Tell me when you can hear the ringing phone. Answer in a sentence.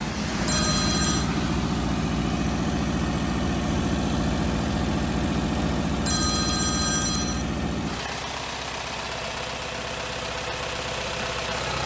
The ringing phone can be heard from 0.5 to 1.3 s and from 6.0 to 7.5 s.